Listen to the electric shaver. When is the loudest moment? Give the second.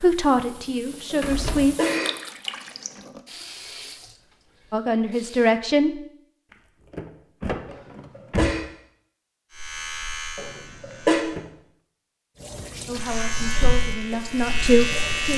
15 s.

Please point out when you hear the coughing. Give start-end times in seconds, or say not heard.
1.1-2.1, 7.7-8.7, 10.3-11.2.